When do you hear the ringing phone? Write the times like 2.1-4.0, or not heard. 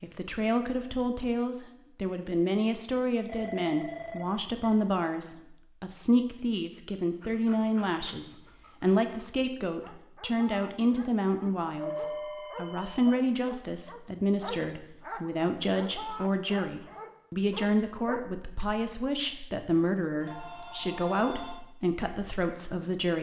3.2-4.8, 11.8-13.2, 20.2-21.6.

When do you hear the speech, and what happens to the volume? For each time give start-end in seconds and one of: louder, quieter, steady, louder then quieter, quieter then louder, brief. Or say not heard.
0.0-23.1 steady.